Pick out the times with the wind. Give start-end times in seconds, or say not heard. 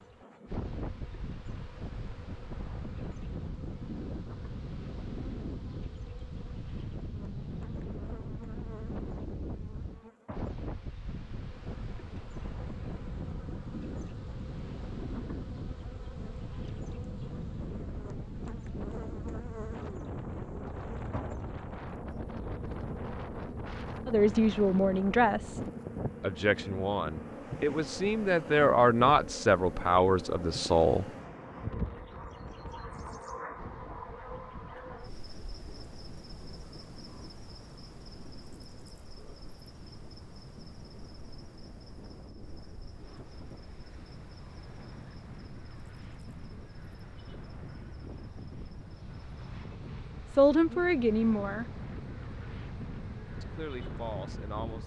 0.0-54.8.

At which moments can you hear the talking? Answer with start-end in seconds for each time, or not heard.
24.1-31.1, 50.3-51.6, 53.4-54.8.